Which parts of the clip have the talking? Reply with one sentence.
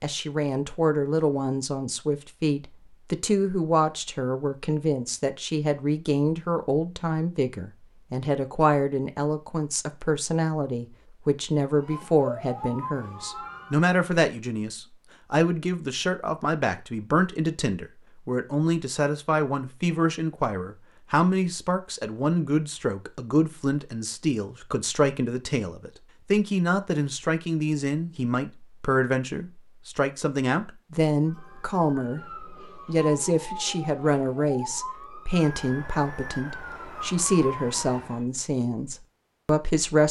You can hear the talking from 0.0 to 40.0 s.